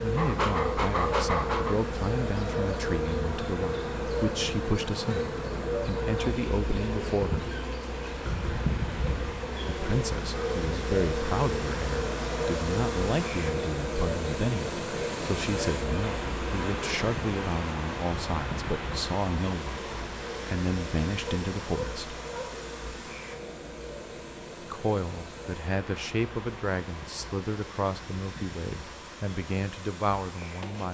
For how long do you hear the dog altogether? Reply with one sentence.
You can hear the dog for 3 seconds altogether.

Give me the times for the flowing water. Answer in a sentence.
You can hear the flowing water from 7.8 to 30.8 s.